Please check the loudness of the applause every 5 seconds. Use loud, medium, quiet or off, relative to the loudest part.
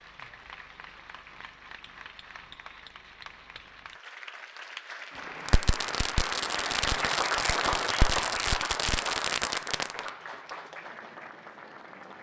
quiet, loud, medium.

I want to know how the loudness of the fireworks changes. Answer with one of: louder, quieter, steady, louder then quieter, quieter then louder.
steady.